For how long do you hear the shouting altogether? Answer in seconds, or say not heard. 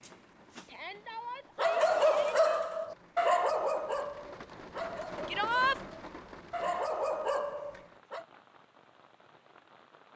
2 s.